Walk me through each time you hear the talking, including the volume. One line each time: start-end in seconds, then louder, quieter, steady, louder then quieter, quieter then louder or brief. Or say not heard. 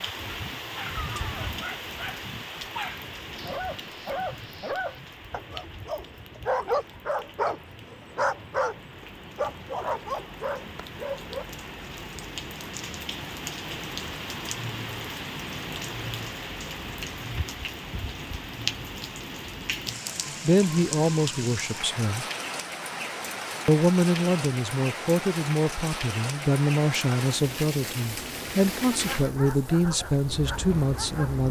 20.4-22.2 brief
23.6-31.4 steady.